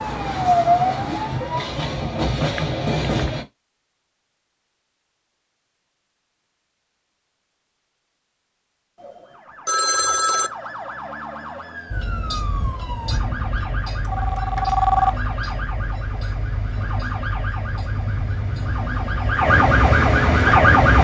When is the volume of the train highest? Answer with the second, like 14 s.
3 s.